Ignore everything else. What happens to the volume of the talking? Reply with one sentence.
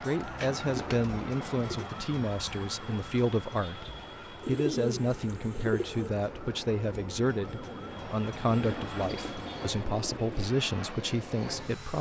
The loudness of the talking stays about the same.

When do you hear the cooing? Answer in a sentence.
The cooing can be heard from 0.4 to 1.9 s, from 4.4 to 6.1 s and from 8.5 to 10.5 s.